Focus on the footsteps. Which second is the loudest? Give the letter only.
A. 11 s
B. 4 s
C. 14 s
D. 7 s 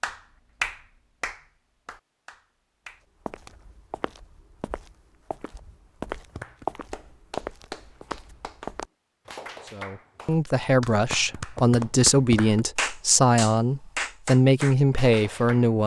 D.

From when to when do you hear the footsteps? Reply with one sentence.
The footsteps can be heard from 3.2 to 8.8 s.